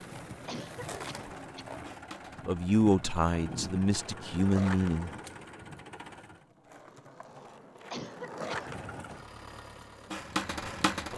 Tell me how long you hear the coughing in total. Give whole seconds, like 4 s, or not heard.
2 s.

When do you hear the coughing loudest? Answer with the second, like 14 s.
8 s.